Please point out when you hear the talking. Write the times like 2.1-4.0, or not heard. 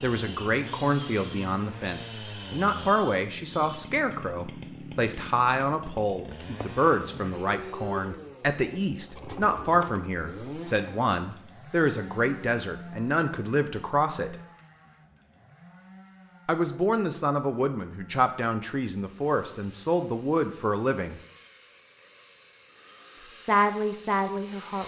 0.0-14.3, 16.4-21.2, 23.4-24.8.